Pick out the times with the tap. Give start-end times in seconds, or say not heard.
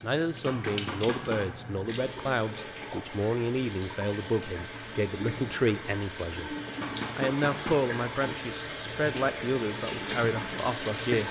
0.0-11.2.